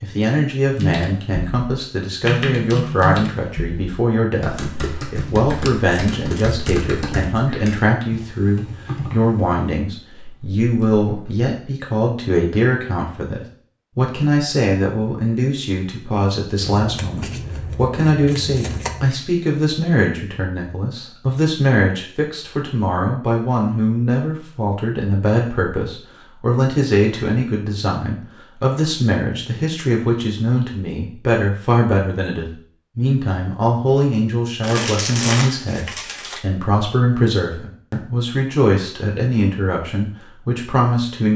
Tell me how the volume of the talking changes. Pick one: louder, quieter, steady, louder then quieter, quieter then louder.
steady.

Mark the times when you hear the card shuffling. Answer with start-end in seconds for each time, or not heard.
5.7-6.8, 16.6-19.1, 34.6-36.5.